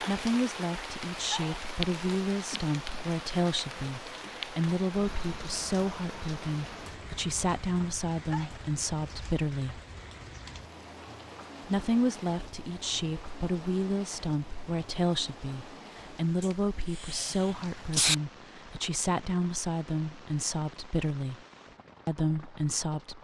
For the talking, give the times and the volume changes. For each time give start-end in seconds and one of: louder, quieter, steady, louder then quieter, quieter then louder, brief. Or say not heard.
0.0-9.8 steady
11.7-21.4 steady
22.1-23.1 brief.